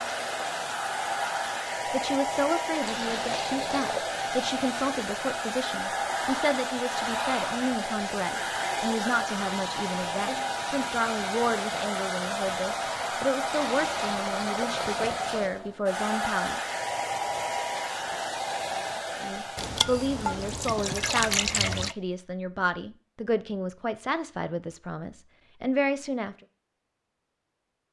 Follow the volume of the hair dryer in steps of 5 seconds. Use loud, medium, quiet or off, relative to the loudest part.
loud, loud, loud, loud, off, off.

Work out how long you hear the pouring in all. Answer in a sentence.
The pouring can be heard for 6 seconds in total.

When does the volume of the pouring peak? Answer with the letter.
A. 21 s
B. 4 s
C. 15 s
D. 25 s
A.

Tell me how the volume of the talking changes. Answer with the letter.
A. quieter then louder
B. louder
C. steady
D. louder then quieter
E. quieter
C.